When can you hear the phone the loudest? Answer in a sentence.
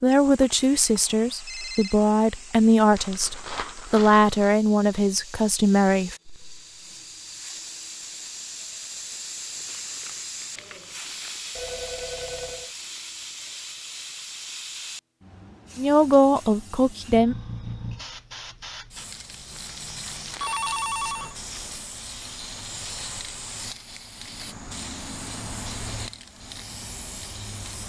The loudest moment of the phone is at 21 seconds.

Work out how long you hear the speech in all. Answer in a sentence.
You can hear the speech for 8 seconds altogether.